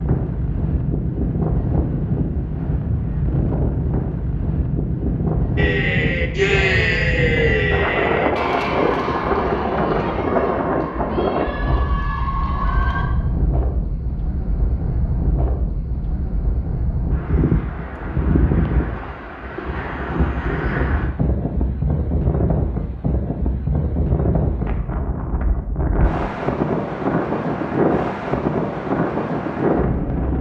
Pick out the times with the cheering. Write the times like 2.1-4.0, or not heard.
5.5-13.1.